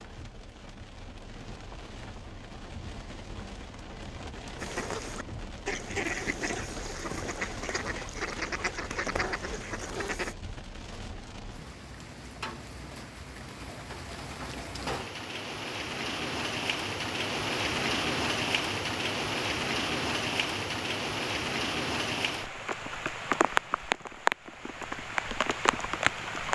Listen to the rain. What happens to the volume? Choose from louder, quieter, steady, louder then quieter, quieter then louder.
louder.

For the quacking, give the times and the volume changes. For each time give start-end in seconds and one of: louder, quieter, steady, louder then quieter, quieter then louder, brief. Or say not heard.
4.5-10.3 steady.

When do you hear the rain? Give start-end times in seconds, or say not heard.
0.0-26.5.